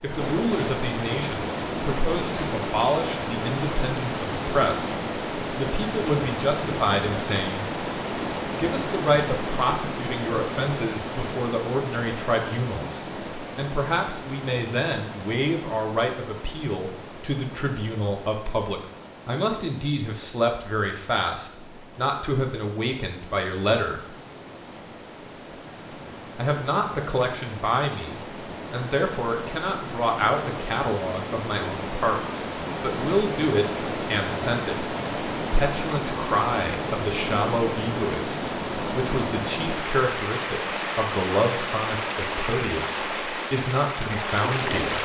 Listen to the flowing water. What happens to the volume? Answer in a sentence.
The loudness of the flowing water goes down, then up.